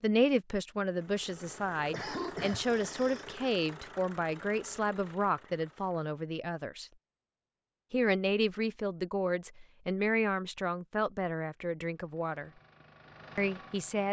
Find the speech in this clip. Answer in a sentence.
You can hear the speech from 0.0 to 6.9 s, from 7.9 to 12.5 s and from 13.3 to 14.0 s.